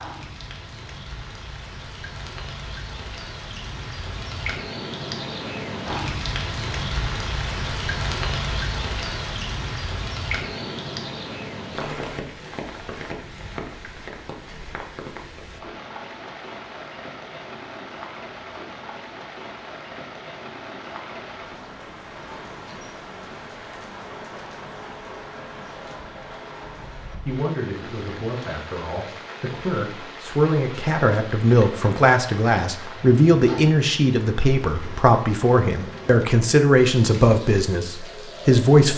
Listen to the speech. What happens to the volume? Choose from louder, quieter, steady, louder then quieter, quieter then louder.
louder.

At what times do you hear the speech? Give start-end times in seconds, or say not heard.
27.2-38.9.